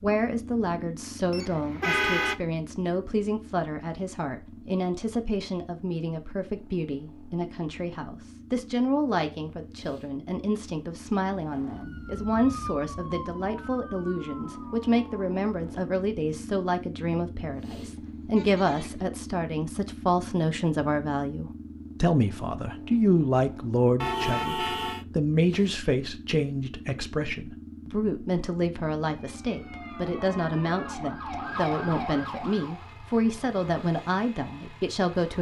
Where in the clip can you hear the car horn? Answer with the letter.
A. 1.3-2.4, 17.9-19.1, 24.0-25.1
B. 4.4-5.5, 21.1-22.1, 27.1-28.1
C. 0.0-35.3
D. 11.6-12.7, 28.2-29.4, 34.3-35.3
A.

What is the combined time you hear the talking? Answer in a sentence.
The talking can be heard for 35 seconds in total.